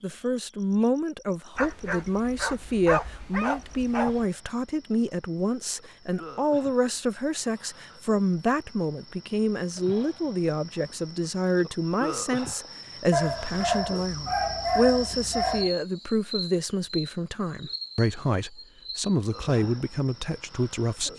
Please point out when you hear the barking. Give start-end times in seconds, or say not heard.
1.6-4.2, 13.1-15.7.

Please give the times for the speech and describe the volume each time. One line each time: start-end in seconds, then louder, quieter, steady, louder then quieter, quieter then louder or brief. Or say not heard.
0.0-21.1 steady.